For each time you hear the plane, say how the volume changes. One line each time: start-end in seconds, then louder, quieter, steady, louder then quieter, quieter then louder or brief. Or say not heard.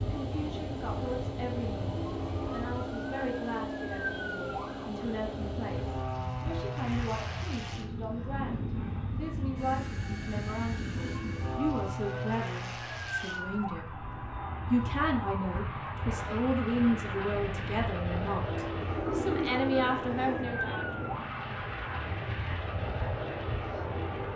0.0-24.3 steady.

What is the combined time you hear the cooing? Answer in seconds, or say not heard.
2 s.